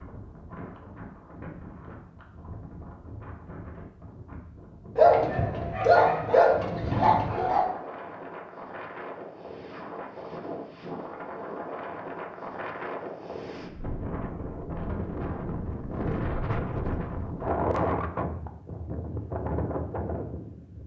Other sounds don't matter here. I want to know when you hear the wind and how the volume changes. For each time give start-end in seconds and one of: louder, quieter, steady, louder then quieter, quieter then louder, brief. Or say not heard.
0.0-20.8 louder.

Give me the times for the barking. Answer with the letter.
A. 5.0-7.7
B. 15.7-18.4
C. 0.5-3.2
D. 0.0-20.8
A.